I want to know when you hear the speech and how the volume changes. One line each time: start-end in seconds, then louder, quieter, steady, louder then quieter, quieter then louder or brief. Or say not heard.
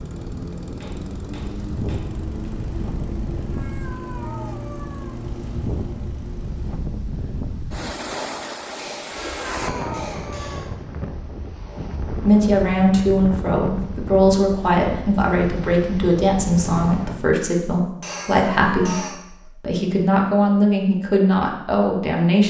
11.7-22.4 steady.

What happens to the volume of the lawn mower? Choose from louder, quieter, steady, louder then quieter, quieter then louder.
steady.